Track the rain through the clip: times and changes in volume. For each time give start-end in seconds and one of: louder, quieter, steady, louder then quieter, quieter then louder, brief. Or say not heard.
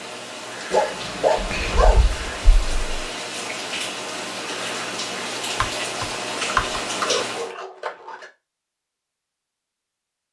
0.0-7.5 louder.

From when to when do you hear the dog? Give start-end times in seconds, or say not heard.
0.7-2.0, 7.0-8.3.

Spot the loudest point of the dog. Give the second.
1 s.